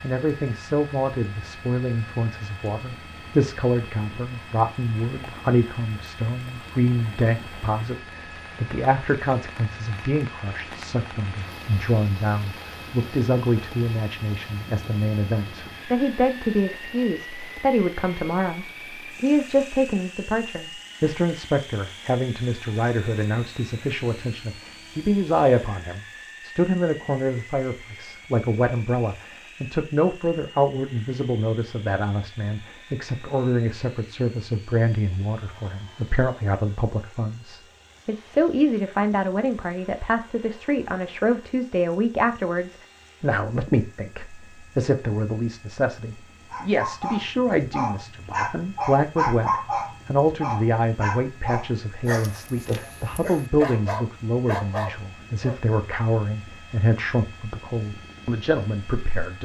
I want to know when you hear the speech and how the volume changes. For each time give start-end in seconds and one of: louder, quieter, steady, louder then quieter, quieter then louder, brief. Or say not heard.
0.0-59.4 steady.